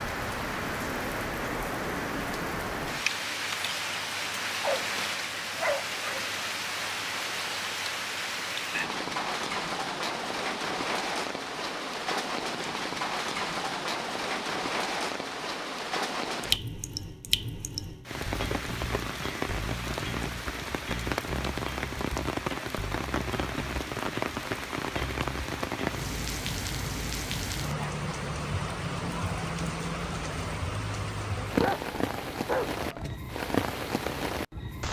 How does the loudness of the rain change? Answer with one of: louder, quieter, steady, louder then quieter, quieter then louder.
steady.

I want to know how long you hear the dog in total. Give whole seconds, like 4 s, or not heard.
3 s.